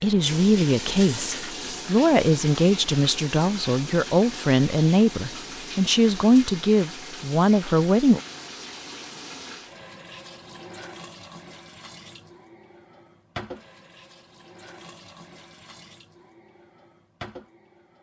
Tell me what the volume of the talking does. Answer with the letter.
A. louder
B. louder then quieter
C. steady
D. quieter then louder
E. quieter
C.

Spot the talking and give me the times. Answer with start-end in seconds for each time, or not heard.
0.0-8.2.